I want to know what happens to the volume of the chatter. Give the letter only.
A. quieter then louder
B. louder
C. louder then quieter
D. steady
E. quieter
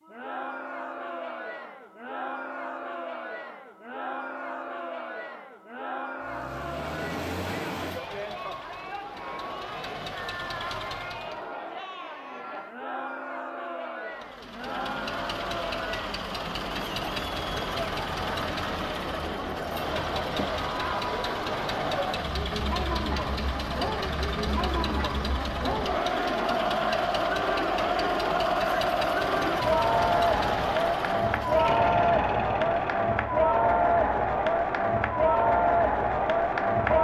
B.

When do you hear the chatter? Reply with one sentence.
The chatter can be heard from 0.0 to 36.9 s.